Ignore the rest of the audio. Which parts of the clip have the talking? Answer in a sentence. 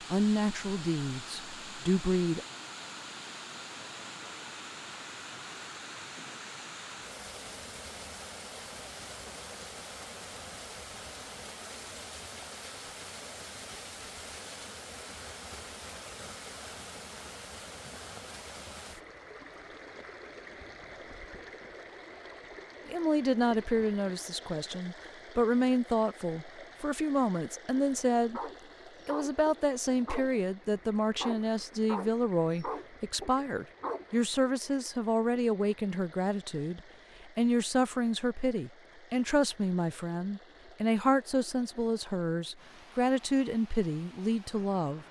The talking can be heard from 0.1 to 2.5 s, from 22.9 to 28.4 s and from 29.1 to 45.0 s.